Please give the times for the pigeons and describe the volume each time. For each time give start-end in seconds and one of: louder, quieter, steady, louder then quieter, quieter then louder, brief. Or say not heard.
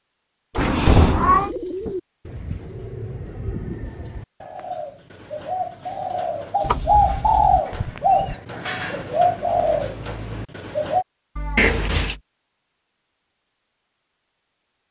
1.2-11.1 louder.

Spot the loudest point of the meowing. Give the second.
1 s.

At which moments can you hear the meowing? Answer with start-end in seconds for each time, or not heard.
0.6-1.5, 7.7-8.3, 11.3-12.1.